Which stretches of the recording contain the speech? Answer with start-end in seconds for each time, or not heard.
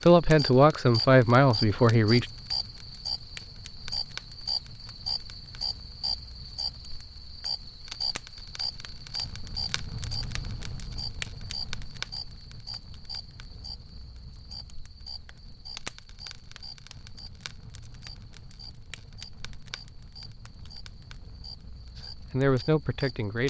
0.0-2.2, 21.9-23.4.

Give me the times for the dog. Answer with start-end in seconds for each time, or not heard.
not heard.